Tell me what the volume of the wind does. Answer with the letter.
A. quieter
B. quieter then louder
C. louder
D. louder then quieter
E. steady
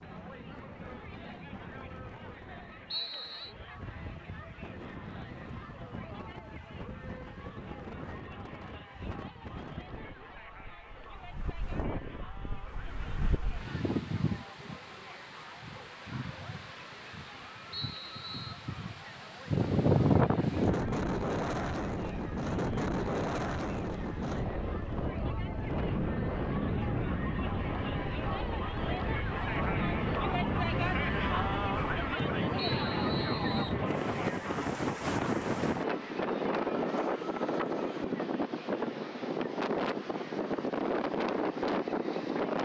C.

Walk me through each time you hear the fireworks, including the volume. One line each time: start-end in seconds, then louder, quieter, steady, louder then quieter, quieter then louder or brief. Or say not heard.
not heard.